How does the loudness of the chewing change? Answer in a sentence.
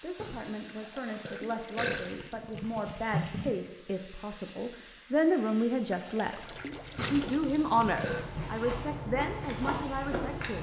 The volume of the chewing goes up.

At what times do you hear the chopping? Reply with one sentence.
You can't hear the chopping here.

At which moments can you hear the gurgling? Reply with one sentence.
You can hear the gurgling from 0.8 to 3.6 s and from 5.9 to 8.4 s.